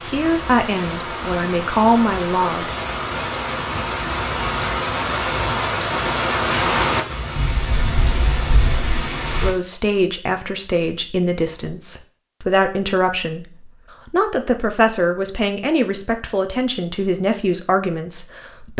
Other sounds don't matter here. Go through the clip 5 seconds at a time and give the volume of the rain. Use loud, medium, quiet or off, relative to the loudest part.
loud, loud, off, off.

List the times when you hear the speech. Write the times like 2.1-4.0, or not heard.
0.0-2.8, 9.4-18.7.